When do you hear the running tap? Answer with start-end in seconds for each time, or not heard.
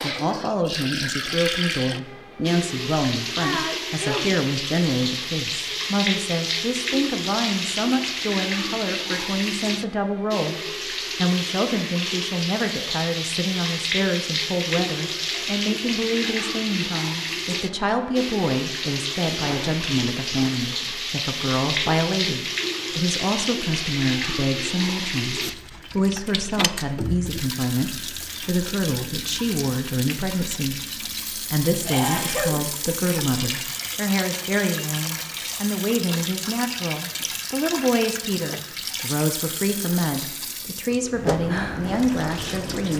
0.0-42.9.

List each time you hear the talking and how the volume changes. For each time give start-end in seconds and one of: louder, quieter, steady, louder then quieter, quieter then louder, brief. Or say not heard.
0.0-42.9 steady.